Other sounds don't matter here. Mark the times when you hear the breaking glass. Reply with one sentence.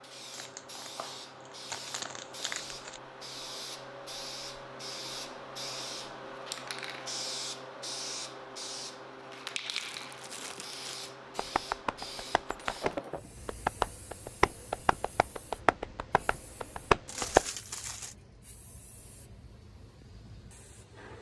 You can hear the breaking glass from 12.4 to 13.3 s.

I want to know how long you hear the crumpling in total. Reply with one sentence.
You can hear the crumpling for 5 seconds altogether.